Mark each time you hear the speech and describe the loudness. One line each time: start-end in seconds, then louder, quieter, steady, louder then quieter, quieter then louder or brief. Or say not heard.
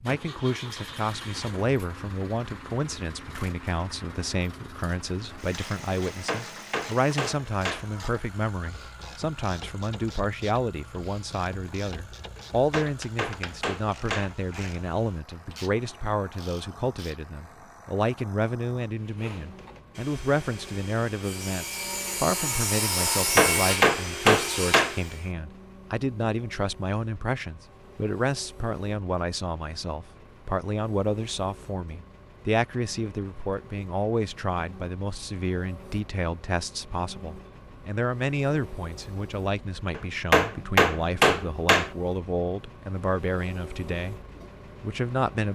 0.0-44.2 steady
44.8-45.5 brief.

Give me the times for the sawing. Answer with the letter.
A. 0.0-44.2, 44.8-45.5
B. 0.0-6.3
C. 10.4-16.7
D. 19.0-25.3
D.